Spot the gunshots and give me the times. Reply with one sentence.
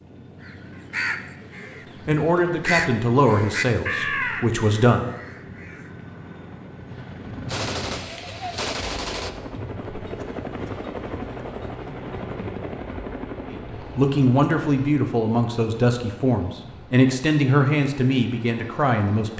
The gunshots can be heard from 7.5 to 9.3 s.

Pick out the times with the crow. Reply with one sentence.
You can hear the crow from 0.4 to 5.9 s.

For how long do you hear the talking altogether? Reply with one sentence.
The talking can be heard for 9 seconds in total.